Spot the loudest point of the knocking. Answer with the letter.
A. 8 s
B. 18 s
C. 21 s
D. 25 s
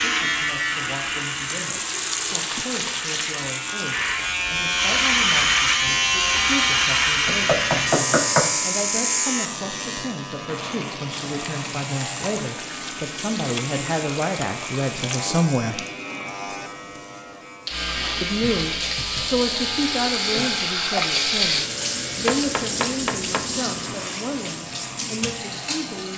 A.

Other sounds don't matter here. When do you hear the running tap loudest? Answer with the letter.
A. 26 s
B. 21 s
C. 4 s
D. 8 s
B.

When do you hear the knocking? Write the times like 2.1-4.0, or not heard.
7.2-8.6, 22.2-23.4.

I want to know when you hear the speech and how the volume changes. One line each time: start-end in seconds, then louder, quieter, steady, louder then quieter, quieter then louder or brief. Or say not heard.
0.0-15.8 louder
18.2-26.1 quieter.